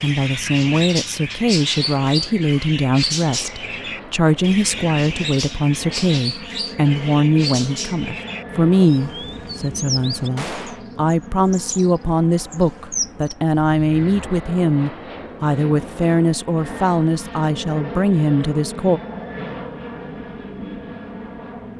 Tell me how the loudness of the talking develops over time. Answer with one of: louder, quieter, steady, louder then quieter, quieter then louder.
steady.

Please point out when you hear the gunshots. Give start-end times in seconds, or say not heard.
10.3-10.8.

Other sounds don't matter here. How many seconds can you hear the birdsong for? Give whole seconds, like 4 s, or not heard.
14 s.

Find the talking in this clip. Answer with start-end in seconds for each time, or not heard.
0.0-19.0.